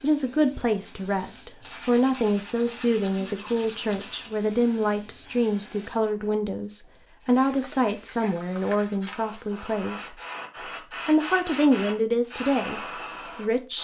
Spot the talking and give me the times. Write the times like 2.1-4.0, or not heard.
0.0-10.2, 11.1-13.7.